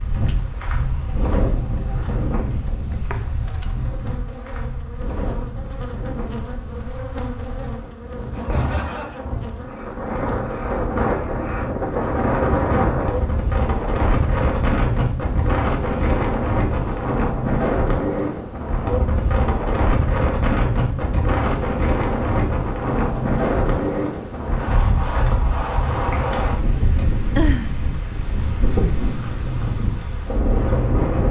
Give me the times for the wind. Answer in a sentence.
You can hear the wind from 0.0 to 31.2 s.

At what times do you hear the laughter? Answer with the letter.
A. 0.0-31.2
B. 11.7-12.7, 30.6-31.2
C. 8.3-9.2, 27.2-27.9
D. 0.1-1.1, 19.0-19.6
C.